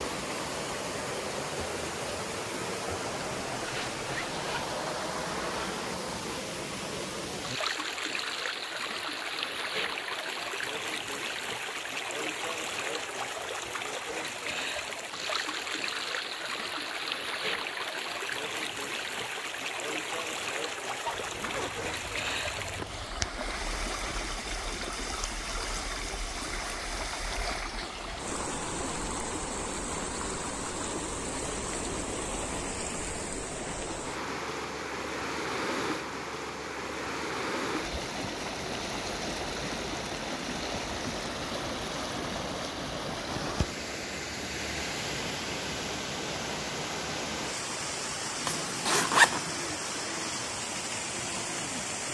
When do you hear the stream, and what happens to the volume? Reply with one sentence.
The stream can be heard from 0.0 to 52.0 s, at a steady volume.